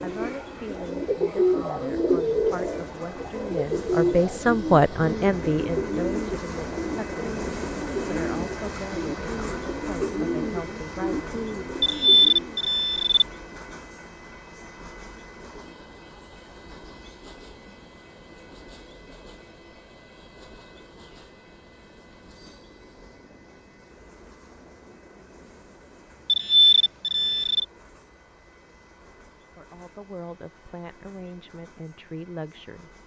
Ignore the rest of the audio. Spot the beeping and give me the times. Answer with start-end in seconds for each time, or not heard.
11.8-13.2, 26.2-27.6.